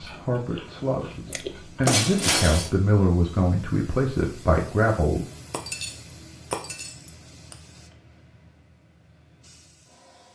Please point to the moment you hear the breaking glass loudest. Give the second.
2 s.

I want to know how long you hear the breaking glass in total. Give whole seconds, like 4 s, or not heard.
3 s.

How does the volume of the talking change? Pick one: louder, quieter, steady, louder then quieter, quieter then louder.
louder.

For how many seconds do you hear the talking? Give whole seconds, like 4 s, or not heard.
5 s.